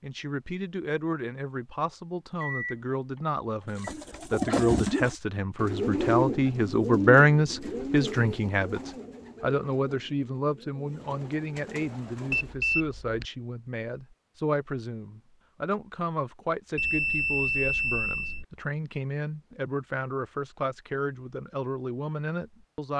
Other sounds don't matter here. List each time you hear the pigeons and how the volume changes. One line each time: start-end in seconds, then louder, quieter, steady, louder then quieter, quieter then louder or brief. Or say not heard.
3.8-12.6 quieter.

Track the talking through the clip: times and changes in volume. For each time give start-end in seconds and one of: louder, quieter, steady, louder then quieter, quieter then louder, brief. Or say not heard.
0.0-22.9 louder then quieter.